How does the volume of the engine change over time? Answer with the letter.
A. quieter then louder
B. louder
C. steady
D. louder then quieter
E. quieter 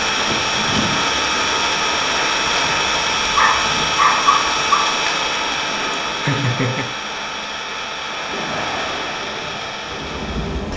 E.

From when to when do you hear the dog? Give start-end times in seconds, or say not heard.
3.2-4.8.